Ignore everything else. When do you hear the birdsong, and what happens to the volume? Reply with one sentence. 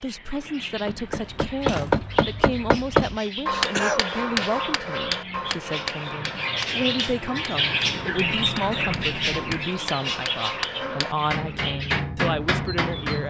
The birdsong can be heard from 0.0 to 13.2 s, getting louder then quieter.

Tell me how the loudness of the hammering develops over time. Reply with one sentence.
The loudness of the hammering goes down, then up.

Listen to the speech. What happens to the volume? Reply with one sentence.
The volume of the speech stays about the same.